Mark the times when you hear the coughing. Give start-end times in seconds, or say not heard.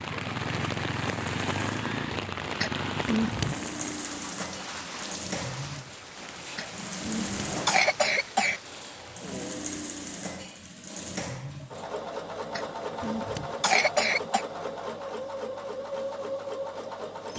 2.6-3.6, 6.5-8.6, 12.6-14.4.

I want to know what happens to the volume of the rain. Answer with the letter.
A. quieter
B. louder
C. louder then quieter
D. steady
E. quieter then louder
A.